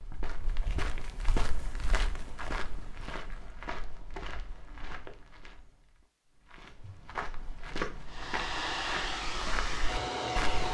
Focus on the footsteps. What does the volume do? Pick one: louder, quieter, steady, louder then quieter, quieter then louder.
quieter then louder.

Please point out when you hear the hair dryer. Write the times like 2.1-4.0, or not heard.
8.1-10.6.